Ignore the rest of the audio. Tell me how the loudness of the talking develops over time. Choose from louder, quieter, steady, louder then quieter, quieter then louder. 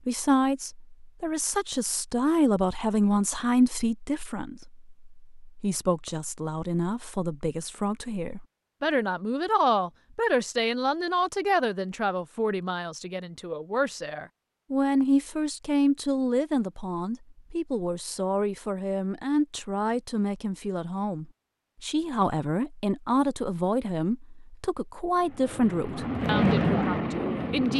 steady.